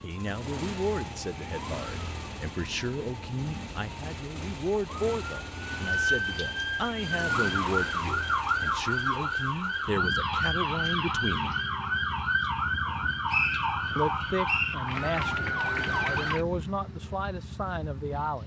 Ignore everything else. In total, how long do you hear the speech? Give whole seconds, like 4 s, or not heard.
16 s.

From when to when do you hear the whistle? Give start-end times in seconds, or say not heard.
12.8-14.8.